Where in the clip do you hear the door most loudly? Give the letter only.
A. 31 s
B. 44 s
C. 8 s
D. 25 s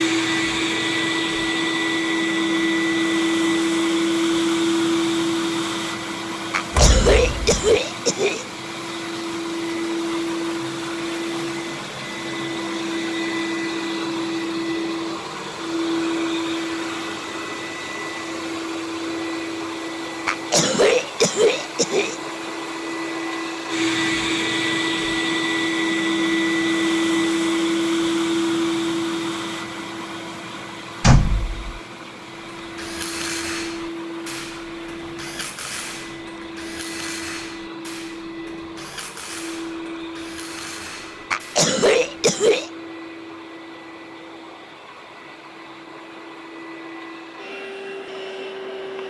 A.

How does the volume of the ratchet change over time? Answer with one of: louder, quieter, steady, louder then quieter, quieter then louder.
quieter.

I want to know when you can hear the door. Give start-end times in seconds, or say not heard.
6.7-7.8, 31.0-31.6.